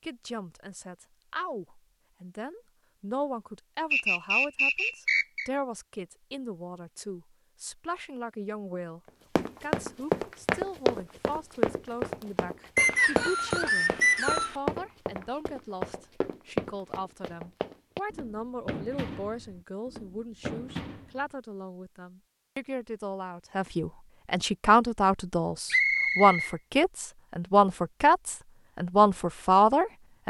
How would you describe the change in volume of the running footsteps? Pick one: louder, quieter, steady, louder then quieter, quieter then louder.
quieter.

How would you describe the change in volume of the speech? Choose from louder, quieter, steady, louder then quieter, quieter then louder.
louder.